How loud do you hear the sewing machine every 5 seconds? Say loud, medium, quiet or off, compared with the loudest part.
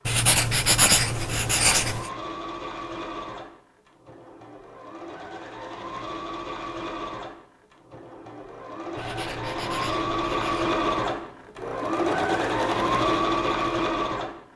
quiet, medium, loud.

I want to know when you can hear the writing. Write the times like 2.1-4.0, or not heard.
0.1-2.1, 8.9-10.7.